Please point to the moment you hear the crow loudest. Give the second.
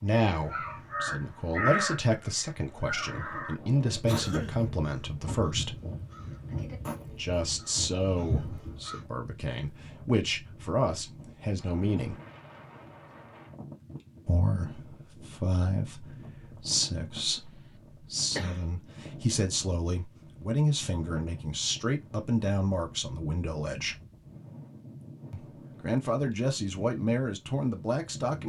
2 s.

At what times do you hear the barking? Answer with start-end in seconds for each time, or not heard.
not heard.